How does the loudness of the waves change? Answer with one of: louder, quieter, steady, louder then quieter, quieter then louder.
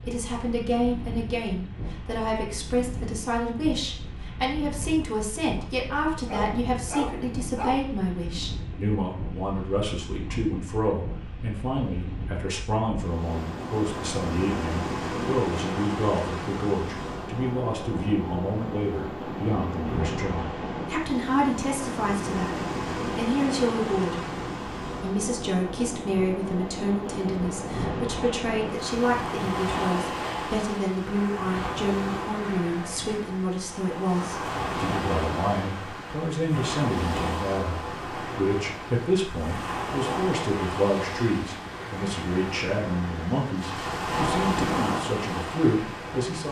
louder.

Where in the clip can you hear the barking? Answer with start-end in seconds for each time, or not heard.
6.2-7.8.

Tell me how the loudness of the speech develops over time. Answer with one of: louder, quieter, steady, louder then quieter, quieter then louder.
steady.